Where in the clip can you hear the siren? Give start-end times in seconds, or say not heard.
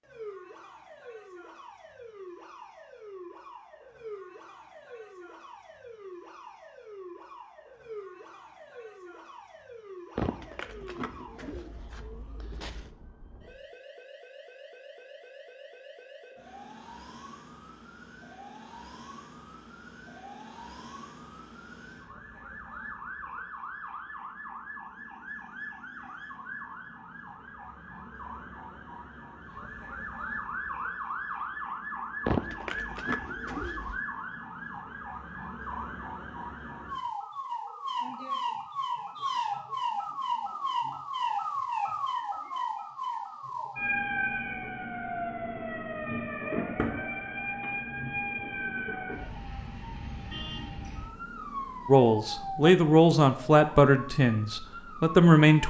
0.0-55.6.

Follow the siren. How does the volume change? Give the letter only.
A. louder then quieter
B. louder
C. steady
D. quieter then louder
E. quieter
B.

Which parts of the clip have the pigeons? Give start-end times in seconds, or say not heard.
10.2-12.9, 32.2-34.0.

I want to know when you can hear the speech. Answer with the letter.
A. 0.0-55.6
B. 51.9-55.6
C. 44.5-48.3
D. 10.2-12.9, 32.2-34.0
B.